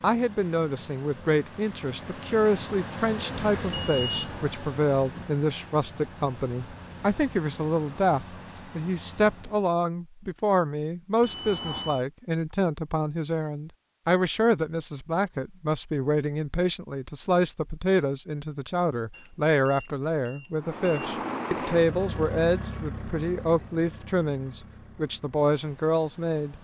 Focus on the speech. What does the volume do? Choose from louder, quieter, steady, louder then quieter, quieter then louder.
steady.